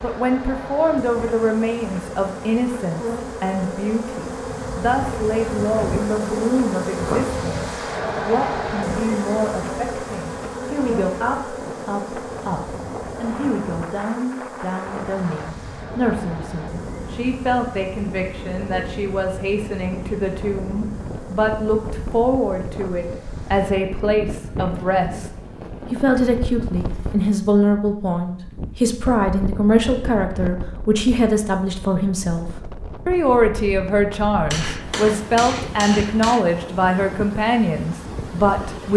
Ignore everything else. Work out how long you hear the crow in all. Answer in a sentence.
You can't hear the crow here.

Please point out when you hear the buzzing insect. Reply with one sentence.
You can hear the buzzing insect from 0.0 to 27.1 s.